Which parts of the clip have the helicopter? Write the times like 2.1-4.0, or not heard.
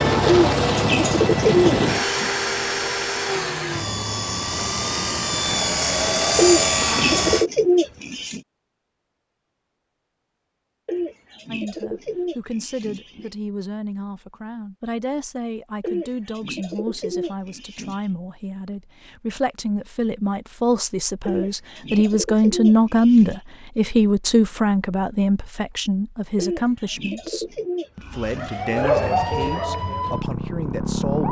0.0-7.5.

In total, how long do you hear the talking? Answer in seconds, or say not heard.
20 s.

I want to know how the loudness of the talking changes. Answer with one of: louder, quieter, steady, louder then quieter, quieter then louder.
louder then quieter.